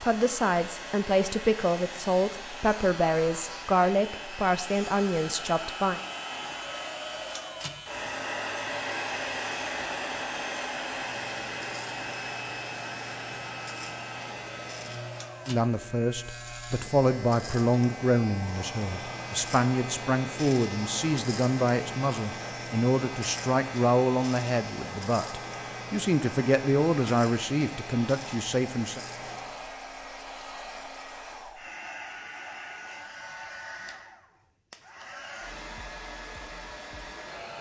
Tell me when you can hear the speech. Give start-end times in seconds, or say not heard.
0.0-6.0, 15.4-29.0.